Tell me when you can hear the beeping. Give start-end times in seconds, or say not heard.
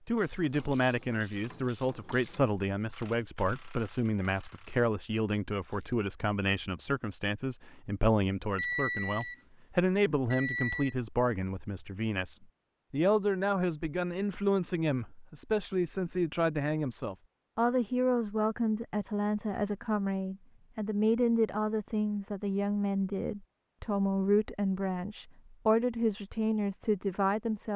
8.6-10.9.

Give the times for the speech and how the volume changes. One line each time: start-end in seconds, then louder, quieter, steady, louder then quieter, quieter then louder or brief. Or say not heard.
0.1-27.7 steady.